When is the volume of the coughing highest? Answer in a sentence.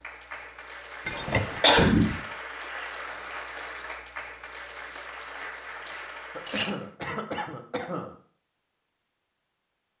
The loudest moment of the coughing is at 2 seconds.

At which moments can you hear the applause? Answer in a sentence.
You can hear the applause from 0.0 to 7.0 s.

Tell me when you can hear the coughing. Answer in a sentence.
The coughing can be heard from 1.2 to 2.1 s and from 6.3 to 8.1 s.